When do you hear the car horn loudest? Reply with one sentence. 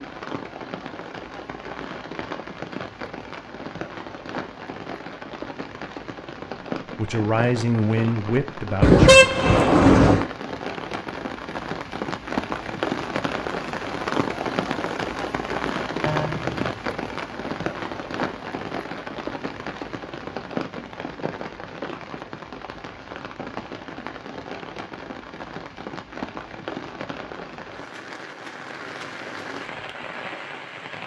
The loudest moment of the car horn is at 9 seconds.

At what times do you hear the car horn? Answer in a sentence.
You can hear the car horn from 8.8 to 10.2 s and from 16.0 to 16.6 s.